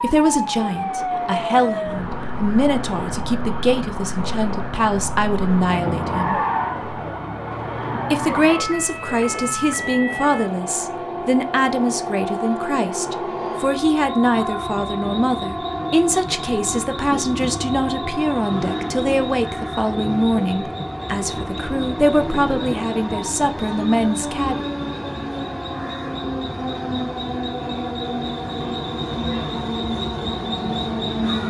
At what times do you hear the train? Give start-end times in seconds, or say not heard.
0.0-31.4.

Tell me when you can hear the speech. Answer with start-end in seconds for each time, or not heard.
0.0-6.5, 8.1-24.6.